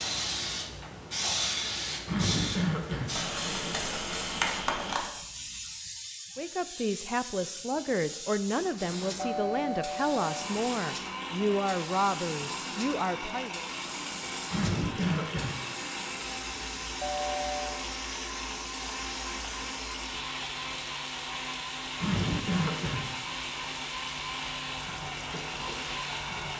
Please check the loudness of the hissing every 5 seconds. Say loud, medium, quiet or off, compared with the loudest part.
loud, medium, medium, medium, medium, medium.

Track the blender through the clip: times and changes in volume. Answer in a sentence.
You can hear the blender from 10.1 to 26.5 s, at a steady volume.